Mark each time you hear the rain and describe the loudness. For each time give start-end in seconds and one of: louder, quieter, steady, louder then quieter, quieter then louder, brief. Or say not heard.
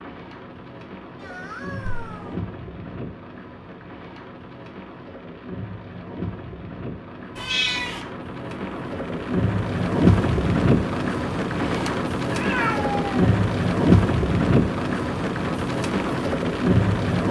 0.0-17.2 louder.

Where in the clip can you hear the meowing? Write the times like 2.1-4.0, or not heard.
1.2-2.4, 7.3-8.0, 12.3-13.1.